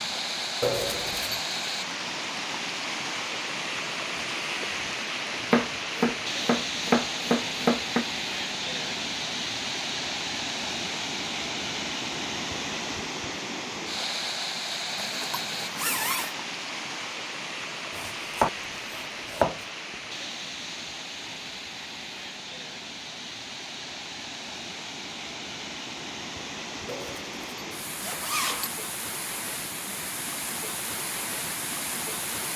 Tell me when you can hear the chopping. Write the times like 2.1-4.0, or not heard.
5.5-8.1, 17.9-19.6.